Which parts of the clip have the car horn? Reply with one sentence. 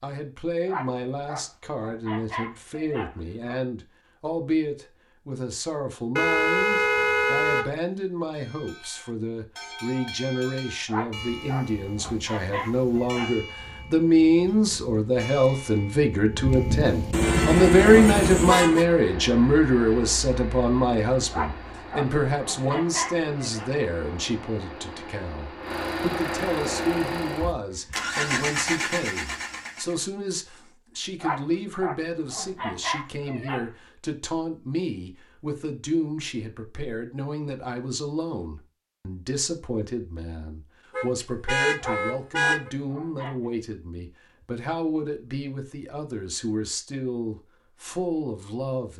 The car horn can be heard from 6.2 to 7.7 s, from 17.1 to 18.9 s and from 41.0 to 42.7 s.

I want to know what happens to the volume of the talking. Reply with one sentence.
The volume of the talking goes up, then down.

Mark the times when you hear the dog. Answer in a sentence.
You can hear the dog from 0.7 to 3.6 s, from 10.8 to 13.3 s, from 21.3 to 23.7 s, from 31.2 to 33.7 s and from 41.8 to 43.4 s.